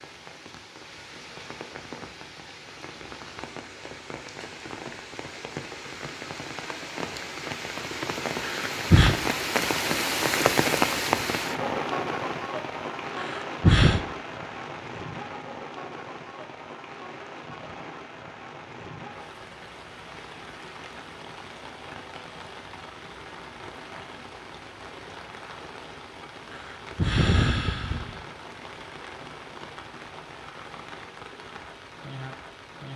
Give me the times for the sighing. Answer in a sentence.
You can hear the sighing from 8.4 to 9.2 s, from 13.2 to 14.0 s and from 26.5 to 28.2 s.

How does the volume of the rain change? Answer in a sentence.
The volume of the rain goes up, then down.